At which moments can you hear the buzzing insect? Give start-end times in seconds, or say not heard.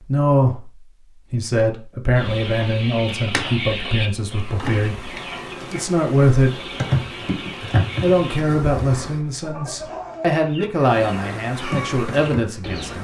2.1-9.2, 10.8-12.9.